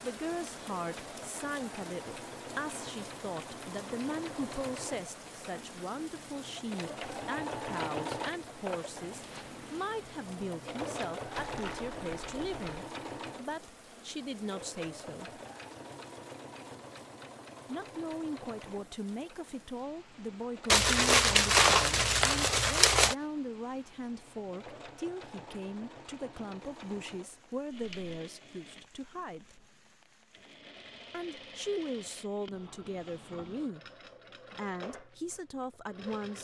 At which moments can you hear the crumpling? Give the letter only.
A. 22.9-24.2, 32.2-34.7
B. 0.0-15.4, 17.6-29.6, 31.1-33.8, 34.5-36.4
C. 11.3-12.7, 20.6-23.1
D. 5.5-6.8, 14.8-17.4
C.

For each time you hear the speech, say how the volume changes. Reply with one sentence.
You can hear the speech from 0.0 to 15.4 s, at a steady volume; from 17.6 to 29.6 s, at a steady volume; briefly from 31.1 to 33.8 s; and briefly from 34.5 to 36.4 s.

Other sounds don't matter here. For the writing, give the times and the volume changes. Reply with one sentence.
You can't hear the writing here.